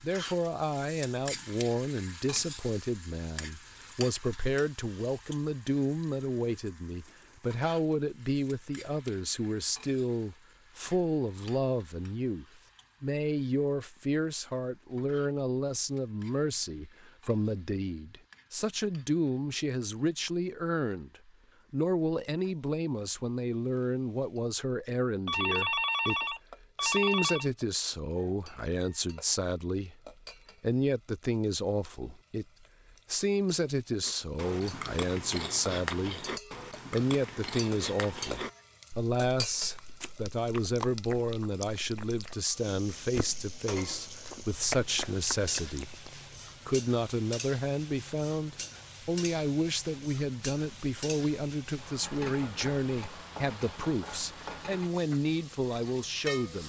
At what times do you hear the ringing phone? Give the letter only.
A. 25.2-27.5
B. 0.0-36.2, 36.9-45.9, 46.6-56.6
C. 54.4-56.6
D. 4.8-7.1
A.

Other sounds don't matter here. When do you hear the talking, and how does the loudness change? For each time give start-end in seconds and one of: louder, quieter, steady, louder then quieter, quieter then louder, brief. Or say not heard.
0.0-36.2 steady
36.9-45.9 steady
46.6-56.6 steady.